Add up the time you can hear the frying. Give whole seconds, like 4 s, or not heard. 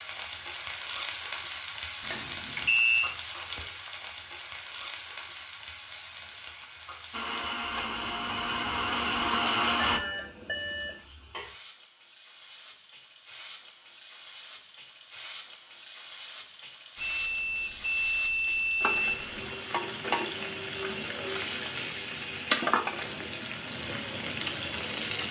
25 s.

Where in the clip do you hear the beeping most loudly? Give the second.
3 s.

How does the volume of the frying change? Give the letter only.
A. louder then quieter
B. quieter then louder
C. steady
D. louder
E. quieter
B.